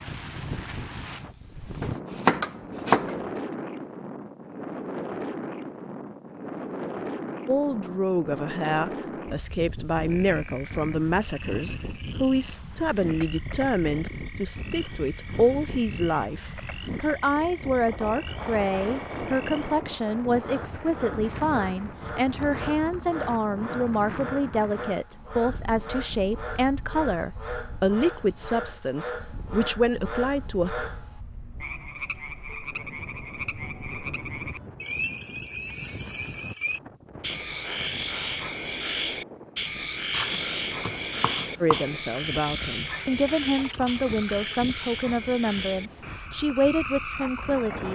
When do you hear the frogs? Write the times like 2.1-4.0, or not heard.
10.1-47.8.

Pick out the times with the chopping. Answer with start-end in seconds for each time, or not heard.
1.8-3.2, 40.1-41.9.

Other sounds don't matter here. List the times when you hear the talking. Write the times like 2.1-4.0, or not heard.
7.5-30.7, 41.6-47.8.